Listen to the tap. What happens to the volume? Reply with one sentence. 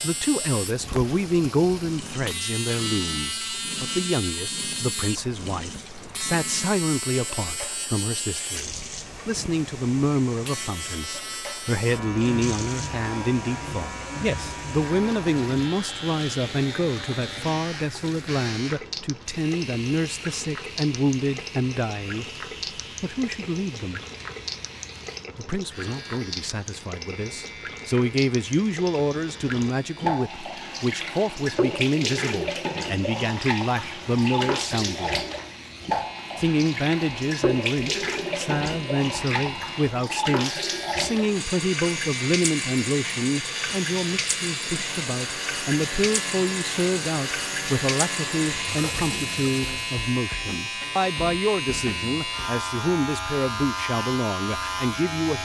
The volume of the tap goes up.